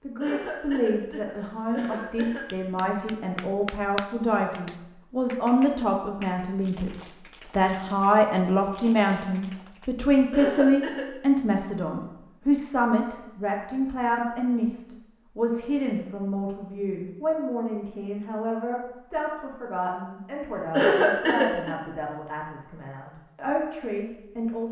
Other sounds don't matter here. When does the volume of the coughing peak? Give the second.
21 s.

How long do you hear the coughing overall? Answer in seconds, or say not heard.
4 s.